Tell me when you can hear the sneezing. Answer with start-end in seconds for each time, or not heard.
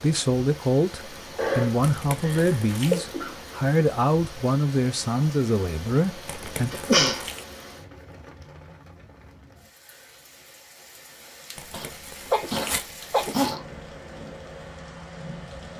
1.4-3.4, 6.5-7.2, 11.7-13.6.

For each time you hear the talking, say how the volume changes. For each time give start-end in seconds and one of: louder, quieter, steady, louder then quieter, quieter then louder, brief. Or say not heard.
0.0-6.7 steady.